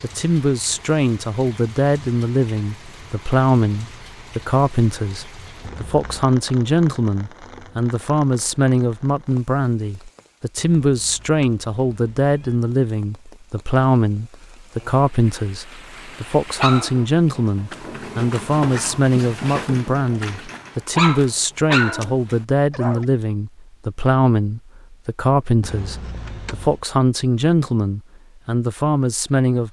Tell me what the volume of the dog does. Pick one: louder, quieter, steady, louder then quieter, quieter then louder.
louder.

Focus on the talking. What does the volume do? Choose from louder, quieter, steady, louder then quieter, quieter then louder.
steady.